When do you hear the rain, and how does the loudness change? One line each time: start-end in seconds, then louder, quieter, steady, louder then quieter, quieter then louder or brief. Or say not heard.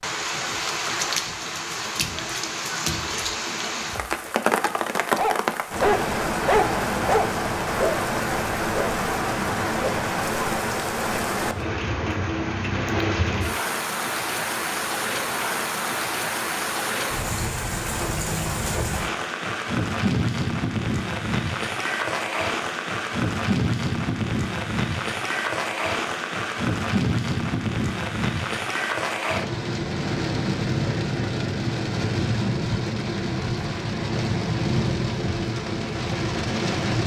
0.0-37.0 steady.